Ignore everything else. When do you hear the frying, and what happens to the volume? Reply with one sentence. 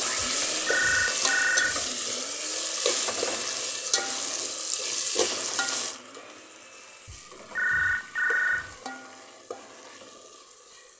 The frying can be heard from 0.0 to 10.9 s, getting quieter.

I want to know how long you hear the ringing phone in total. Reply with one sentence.
The ringing phone can be heard for 3 seconds in total.